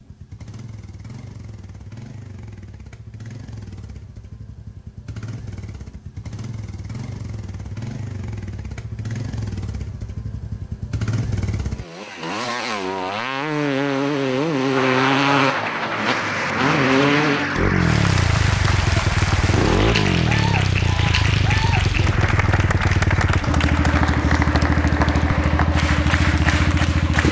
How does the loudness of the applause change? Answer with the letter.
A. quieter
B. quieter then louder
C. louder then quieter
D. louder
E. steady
E.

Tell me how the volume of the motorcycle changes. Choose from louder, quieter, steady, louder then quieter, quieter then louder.
louder.